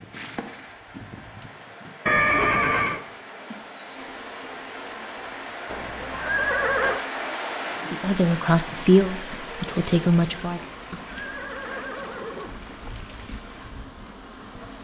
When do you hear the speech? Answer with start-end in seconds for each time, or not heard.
7.9-10.6.